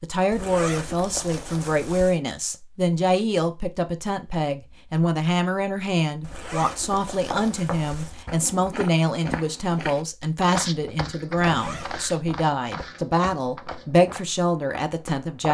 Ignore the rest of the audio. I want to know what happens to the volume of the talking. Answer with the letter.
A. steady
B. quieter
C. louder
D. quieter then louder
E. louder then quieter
A.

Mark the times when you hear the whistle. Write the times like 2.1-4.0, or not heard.
not heard.